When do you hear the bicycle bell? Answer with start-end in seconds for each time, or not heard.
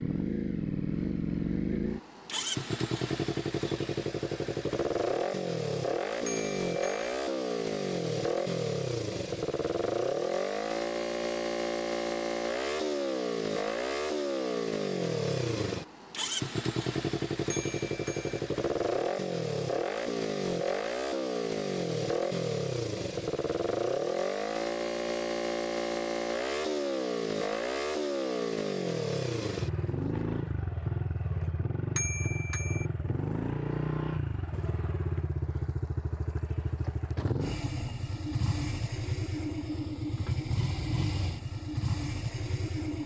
6.2-7.1, 17.5-18.4, 31.9-32.9.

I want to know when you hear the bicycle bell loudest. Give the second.
32 s.